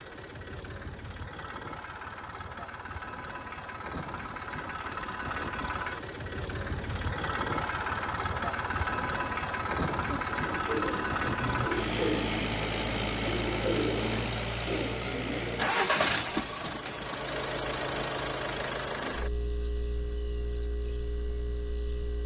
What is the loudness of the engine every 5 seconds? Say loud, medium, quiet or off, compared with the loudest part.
medium, loud, loud, loud, medium.